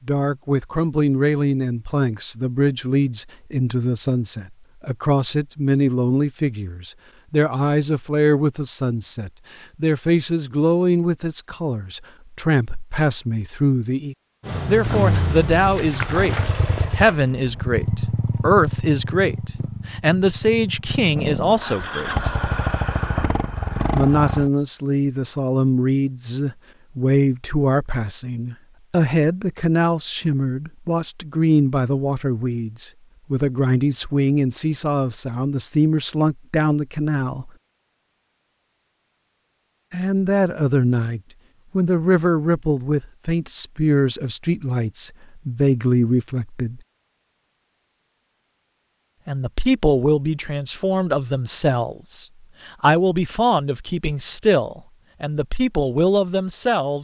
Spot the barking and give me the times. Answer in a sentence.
You can't hear the barking here.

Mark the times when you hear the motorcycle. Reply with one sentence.
You can hear the motorcycle from 14.4 to 24.5 s.